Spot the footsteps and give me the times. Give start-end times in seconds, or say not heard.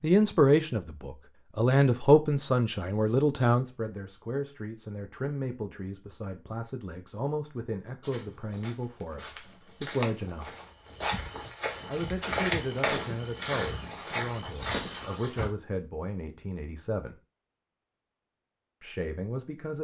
8.0-15.5.